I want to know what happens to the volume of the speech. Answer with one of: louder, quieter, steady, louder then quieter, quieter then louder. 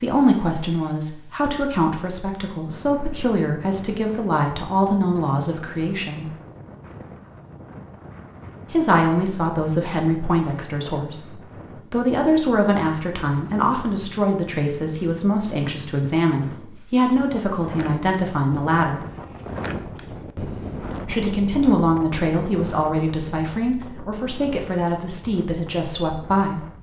steady.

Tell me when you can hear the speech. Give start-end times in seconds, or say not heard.
0.0-6.3, 8.7-19.1, 21.0-26.6.